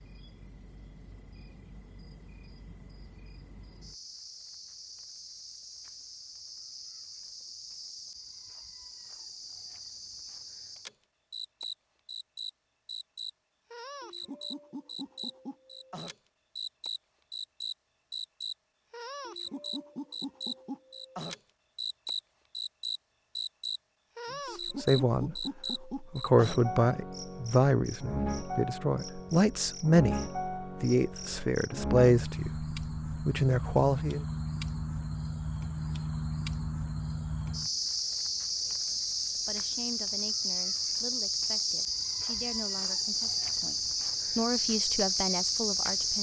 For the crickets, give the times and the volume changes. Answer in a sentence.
You can hear the crickets from 0.0 to 46.1 s, getting louder.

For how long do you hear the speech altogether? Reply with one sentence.
The speech can be heard for 17 seconds in total.